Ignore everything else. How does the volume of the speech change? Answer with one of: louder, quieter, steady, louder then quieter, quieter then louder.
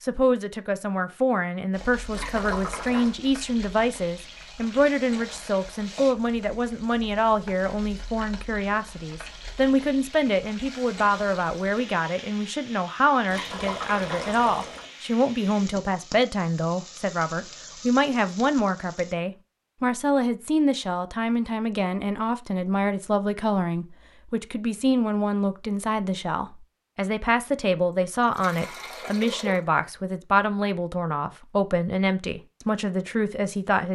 steady.